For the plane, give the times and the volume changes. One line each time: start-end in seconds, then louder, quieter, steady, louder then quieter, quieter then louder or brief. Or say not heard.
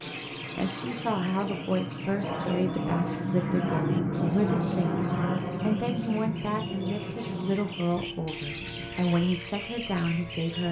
0.0-10.6 louder then quieter.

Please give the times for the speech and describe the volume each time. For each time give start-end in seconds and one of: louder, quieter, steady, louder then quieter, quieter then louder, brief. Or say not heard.
0.6-10.6 steady.